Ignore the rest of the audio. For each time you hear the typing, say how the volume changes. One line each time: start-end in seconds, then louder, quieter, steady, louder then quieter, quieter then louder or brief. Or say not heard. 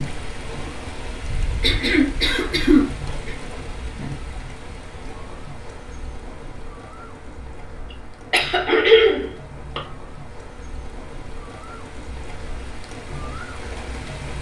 not heard.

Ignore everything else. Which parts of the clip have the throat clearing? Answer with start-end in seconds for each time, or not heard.
1.6-3.4, 8.3-9.8.